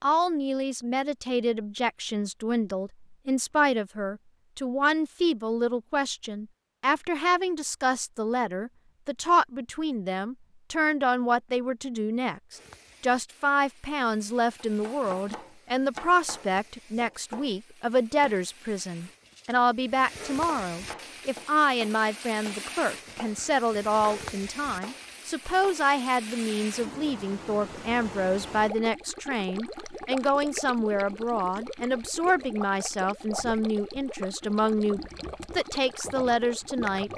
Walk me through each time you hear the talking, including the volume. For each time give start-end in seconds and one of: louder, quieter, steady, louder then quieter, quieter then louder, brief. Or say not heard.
0.0-37.1 steady.